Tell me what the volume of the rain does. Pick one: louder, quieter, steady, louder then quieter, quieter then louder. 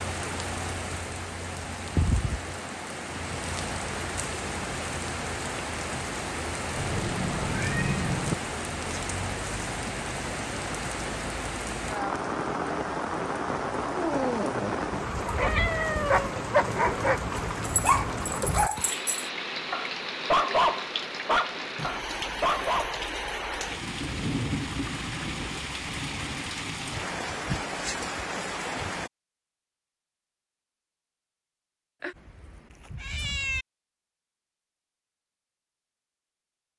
steady.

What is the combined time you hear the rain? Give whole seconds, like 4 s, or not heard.
29 s.